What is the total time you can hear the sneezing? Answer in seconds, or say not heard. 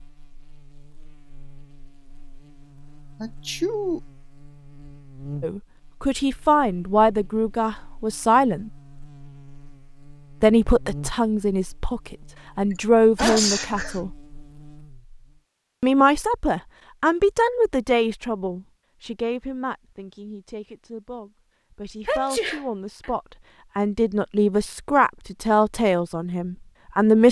3 s.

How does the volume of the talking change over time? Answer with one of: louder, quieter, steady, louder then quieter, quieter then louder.
quieter then louder.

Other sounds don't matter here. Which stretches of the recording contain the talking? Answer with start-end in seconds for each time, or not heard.
5.4-8.7, 10.4-14.1, 15.8-27.2.